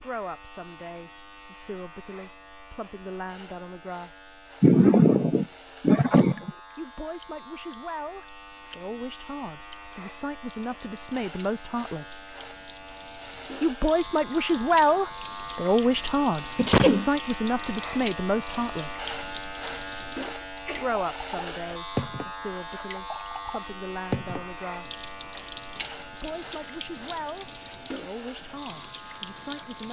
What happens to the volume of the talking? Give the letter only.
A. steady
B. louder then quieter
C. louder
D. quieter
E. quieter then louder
B.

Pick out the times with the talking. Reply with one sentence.
You can hear the talking from 0.0 to 4.2 s, from 6.8 to 12.2 s, from 13.6 to 19.1 s, from 20.8 to 25.0 s and from 26.1 to 29.8 s.